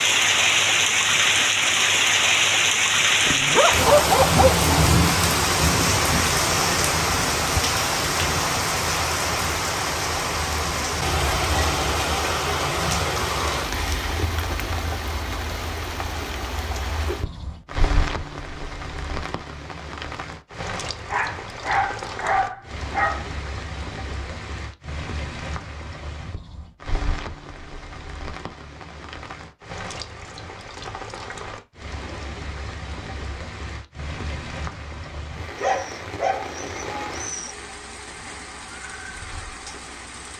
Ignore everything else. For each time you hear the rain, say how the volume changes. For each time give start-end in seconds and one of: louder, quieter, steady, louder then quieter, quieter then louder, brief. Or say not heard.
0.0-40.3 quieter.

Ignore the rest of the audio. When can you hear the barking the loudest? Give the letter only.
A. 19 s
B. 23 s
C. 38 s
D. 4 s
D.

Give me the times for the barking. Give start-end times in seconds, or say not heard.
3.2-4.9, 21.1-23.3, 35.5-37.5.